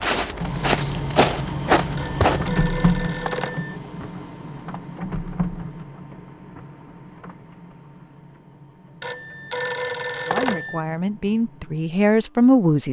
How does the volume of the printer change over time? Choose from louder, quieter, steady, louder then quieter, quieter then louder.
quieter.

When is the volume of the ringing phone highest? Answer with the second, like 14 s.
10 s.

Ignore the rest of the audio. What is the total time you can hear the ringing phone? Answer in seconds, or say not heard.
4 s.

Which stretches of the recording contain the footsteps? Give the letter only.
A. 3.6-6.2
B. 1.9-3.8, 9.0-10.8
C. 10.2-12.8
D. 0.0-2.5
D.